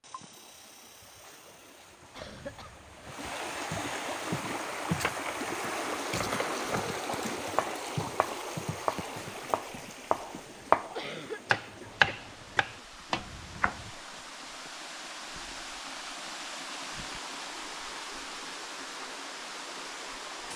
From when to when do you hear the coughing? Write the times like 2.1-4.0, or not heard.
2.1-3.1, 10.9-12.8.